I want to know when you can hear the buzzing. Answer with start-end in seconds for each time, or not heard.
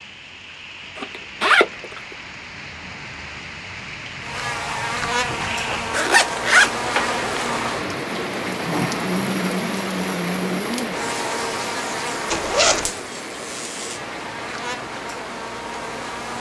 4.2-16.3.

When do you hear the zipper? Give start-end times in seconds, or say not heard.
0.9-2.0, 5.9-7.5, 12.3-12.9.